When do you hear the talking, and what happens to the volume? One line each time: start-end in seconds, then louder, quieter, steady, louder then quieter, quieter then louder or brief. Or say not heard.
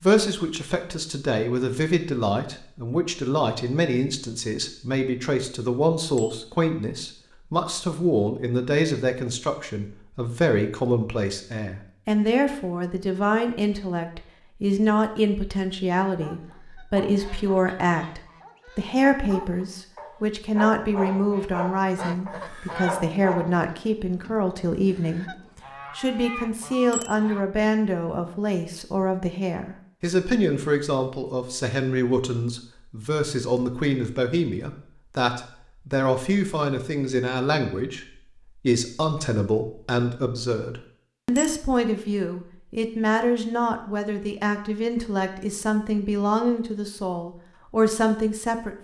0.0-48.8 steady.